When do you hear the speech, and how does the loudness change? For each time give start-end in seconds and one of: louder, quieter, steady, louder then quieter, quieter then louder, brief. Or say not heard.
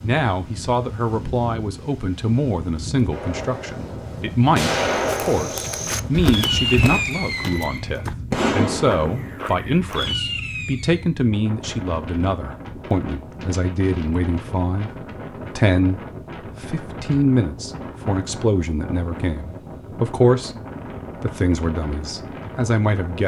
0.0-20.6 steady
21.2-23.2 brief.